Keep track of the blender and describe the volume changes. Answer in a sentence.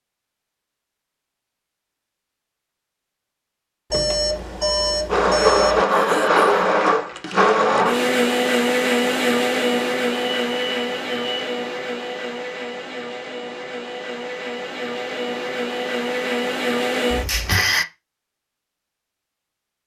The loudness of the blender goes down, then up.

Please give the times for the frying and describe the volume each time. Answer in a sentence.
You can't hear the frying here.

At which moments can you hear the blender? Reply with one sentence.
The blender can be heard from 5.0 to 17.9 s.